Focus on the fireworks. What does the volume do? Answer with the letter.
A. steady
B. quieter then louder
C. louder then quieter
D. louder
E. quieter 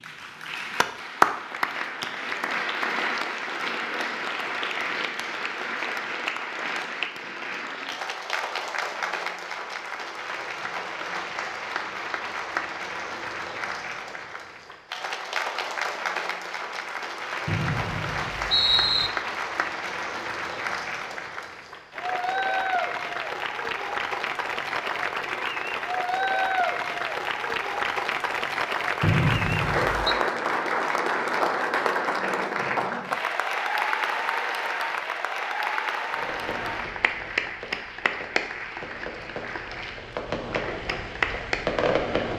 D.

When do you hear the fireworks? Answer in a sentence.
The fireworks can be heard from 36.1 to 42.3 s.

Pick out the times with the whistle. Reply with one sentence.
The whistle can be heard from 17.4 to 19.1 s and from 29.0 to 30.1 s.